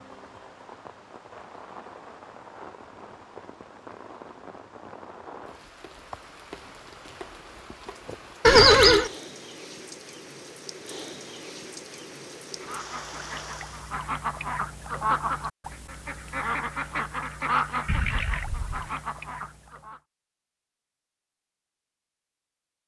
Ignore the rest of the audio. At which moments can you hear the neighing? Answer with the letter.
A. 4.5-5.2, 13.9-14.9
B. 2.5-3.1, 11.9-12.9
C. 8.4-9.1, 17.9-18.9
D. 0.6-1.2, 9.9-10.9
C.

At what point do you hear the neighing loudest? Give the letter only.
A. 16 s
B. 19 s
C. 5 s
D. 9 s
D.